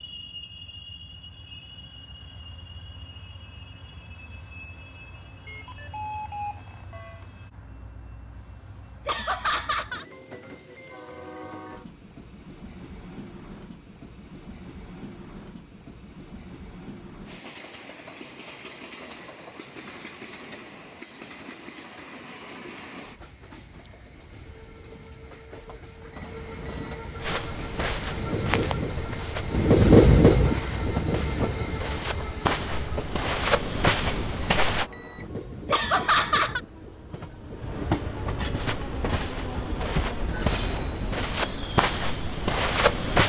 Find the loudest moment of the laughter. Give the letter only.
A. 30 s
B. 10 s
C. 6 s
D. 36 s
D.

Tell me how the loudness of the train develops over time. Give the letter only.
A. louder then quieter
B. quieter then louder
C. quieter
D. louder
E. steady
A.